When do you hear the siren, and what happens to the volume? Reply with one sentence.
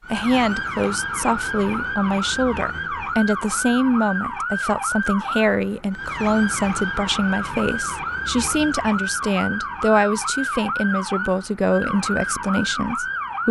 The siren can be heard from 0.0 to 13.4 s, at a steady volume.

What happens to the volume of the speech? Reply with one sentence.
The loudness of the speech stays about the same.